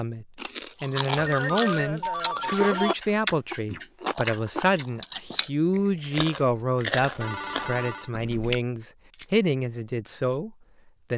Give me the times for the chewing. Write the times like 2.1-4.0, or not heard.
0.3-8.6.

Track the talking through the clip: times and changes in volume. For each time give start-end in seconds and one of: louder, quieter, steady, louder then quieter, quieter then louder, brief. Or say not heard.
0.0-11.1 steady.